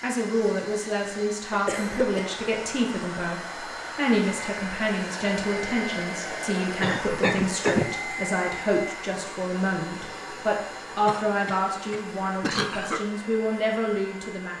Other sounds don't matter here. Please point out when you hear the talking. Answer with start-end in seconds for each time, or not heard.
0.0-14.5.